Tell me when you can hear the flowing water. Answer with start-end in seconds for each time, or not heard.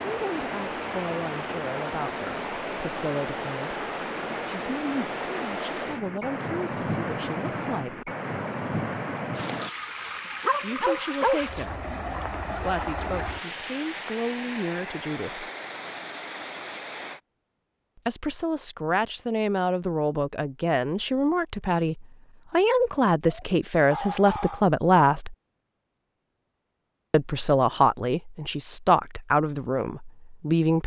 0.0-17.2.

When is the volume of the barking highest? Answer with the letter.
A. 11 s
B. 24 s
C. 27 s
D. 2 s
A.